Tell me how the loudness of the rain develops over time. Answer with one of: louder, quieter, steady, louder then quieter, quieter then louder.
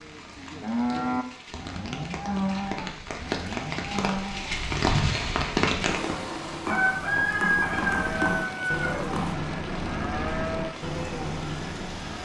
louder then quieter.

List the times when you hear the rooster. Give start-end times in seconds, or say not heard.
6.7-9.3.